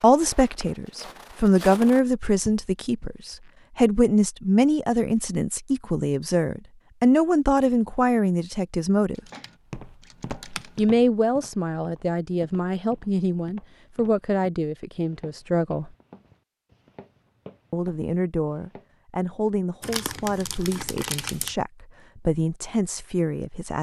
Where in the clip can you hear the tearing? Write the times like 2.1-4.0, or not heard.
19.8-21.6.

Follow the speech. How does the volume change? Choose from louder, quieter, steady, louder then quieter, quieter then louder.
quieter.